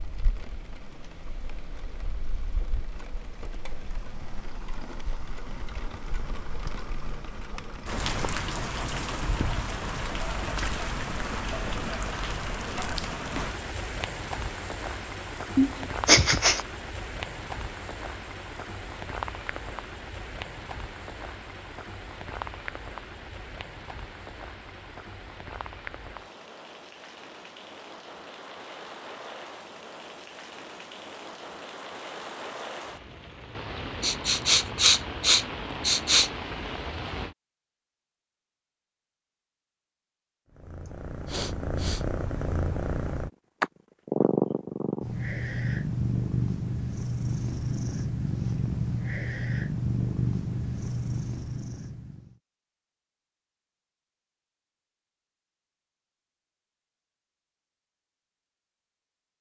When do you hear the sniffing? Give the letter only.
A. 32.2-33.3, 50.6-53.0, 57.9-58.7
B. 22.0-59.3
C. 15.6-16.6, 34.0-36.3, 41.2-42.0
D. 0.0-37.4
C.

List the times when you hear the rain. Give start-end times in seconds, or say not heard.
0.0-37.4.